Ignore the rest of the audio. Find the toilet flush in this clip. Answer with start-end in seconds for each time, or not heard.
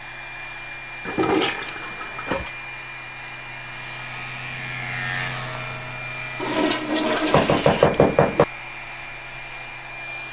1.1-2.5, 6.4-7.9.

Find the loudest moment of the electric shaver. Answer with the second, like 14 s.
5 s.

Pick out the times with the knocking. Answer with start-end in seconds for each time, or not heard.
7.3-8.4.